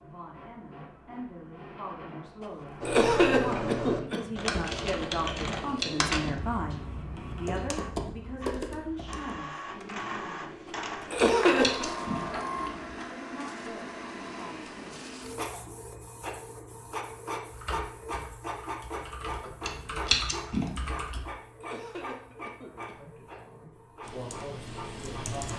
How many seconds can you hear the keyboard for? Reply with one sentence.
You can hear the keyboard for 14 seconds altogether.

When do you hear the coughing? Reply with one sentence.
You can hear the coughing from 2.9 to 4.2 s, from 11.1 to 11.8 s and from 21.6 to 22.9 s.